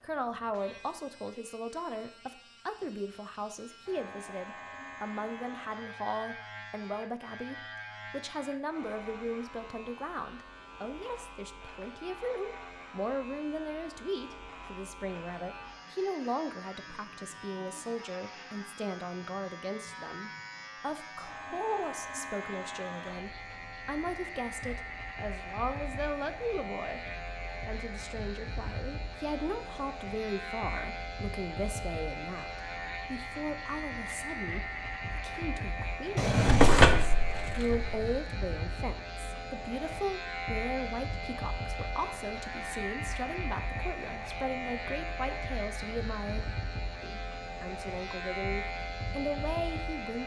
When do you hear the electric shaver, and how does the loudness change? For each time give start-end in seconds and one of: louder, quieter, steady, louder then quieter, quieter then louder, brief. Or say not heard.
0.0-50.2 louder.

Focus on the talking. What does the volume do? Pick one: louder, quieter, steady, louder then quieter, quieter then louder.
steady.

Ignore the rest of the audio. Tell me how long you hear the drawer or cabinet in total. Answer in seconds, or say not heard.
2 s.